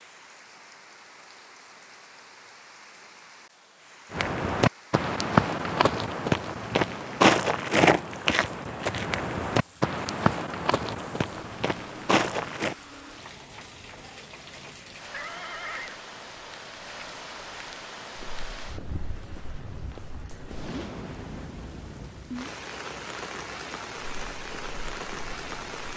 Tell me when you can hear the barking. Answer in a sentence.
The barking can't be heard in this clip.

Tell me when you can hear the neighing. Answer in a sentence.
The neighing can be heard from 15.1 to 16.0 s.